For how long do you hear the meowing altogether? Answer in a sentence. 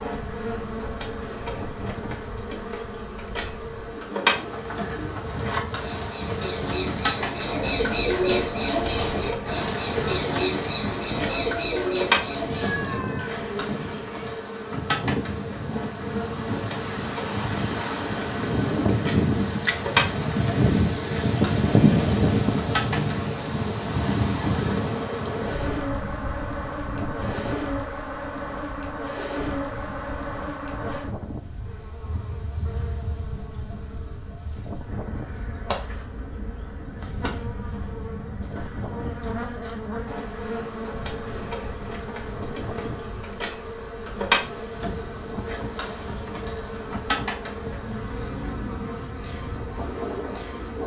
The meowing can be heard for 2 seconds in total.